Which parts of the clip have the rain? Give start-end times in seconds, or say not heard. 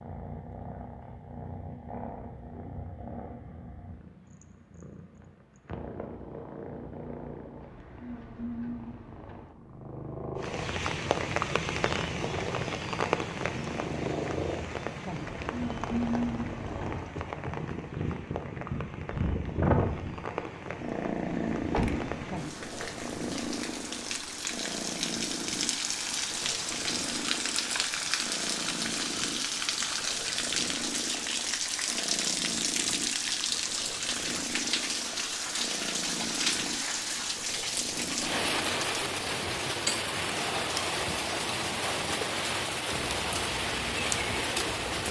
10.3-45.0.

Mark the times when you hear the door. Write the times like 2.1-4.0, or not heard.
21.6-22.1.